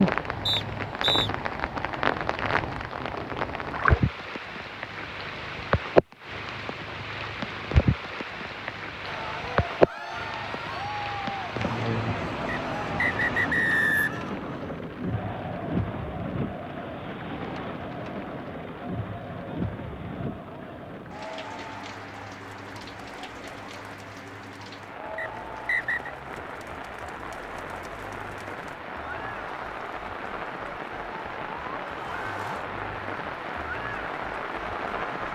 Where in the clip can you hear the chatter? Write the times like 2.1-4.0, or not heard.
9.1-35.2.